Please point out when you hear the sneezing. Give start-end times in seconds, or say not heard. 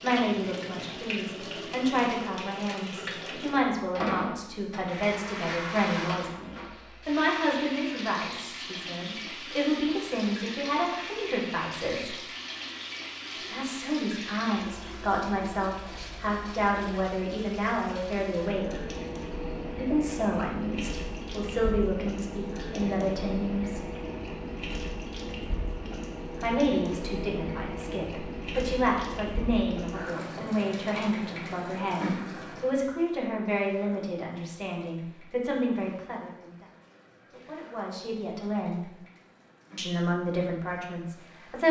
15.8-16.2.